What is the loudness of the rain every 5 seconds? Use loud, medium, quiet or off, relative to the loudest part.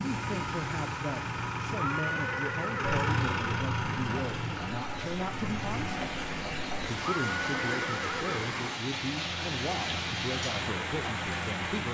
medium, loud, loud.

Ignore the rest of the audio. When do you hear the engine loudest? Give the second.
3 s.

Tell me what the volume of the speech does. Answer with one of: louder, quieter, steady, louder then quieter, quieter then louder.
steady.